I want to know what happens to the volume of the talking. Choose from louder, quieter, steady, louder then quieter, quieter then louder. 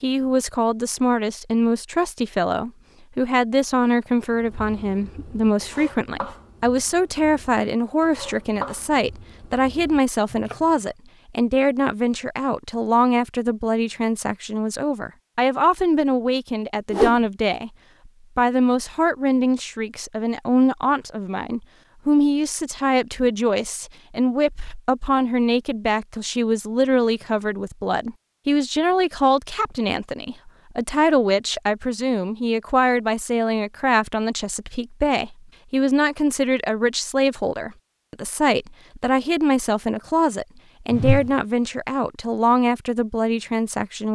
steady.